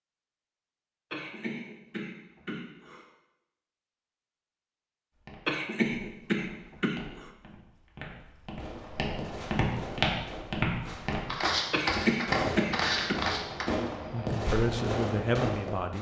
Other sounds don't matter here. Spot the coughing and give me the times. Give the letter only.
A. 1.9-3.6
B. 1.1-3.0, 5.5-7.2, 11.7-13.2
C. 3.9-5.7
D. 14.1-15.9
B.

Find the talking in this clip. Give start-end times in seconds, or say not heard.
14.1-15.9.